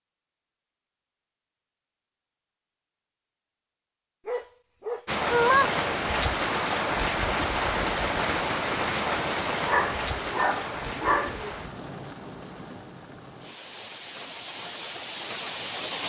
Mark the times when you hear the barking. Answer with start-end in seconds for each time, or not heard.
4.2-5.7, 9.7-11.5.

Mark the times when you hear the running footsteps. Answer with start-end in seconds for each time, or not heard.
not heard.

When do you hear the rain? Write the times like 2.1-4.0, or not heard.
5.0-16.0.